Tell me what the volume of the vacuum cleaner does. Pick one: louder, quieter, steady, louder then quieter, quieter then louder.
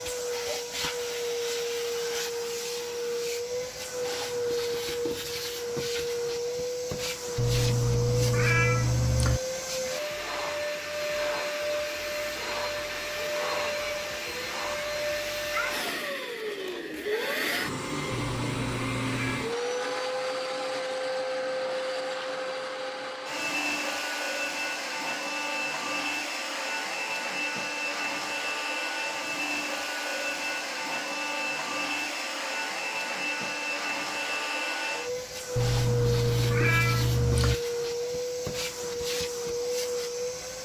steady.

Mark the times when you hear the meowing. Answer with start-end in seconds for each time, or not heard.
7.3-9.4, 18.1-19.4, 35.5-37.5.